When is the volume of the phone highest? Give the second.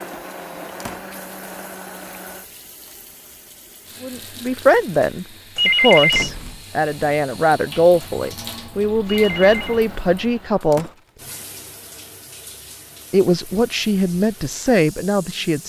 6 s.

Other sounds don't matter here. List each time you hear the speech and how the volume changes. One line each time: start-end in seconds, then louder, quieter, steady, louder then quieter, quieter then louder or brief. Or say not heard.
4.0-10.9 steady
13.1-15.6 brief.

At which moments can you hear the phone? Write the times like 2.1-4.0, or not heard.
5.5-6.3, 9.1-9.8.